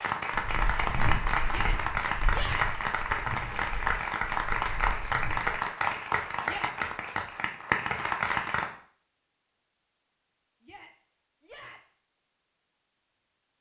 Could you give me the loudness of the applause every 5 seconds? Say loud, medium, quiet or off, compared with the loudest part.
loud, loud, off.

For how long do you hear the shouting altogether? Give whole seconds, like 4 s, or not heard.
3 s.